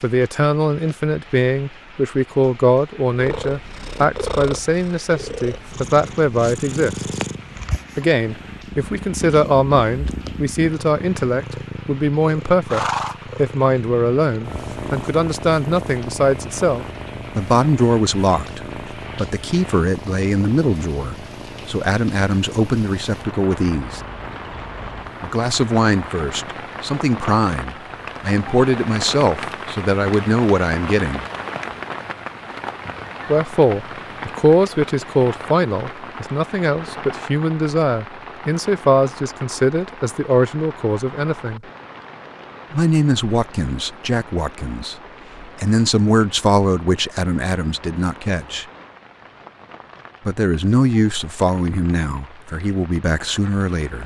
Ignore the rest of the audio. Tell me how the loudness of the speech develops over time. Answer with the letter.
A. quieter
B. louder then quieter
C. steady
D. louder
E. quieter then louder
C.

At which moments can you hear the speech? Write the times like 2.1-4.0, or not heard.
0.0-7.0, 8.0-24.0, 25.2-31.2, 33.2-41.6, 42.7-48.6, 50.2-54.0.